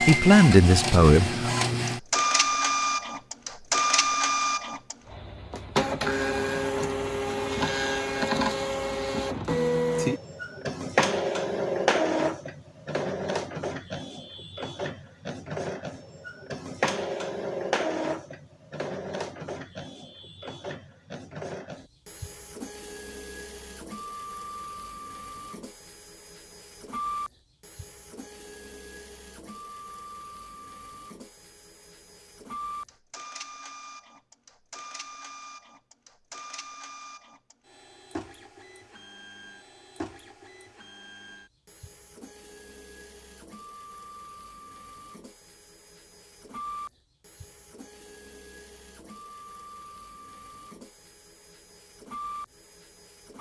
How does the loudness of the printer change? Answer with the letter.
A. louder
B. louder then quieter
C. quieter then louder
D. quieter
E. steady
D.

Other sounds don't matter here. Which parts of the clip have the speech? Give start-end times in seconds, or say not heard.
0.0-1.4.